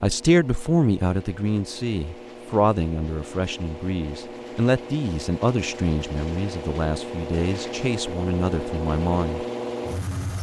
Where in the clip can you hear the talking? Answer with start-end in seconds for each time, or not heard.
0.0-9.4.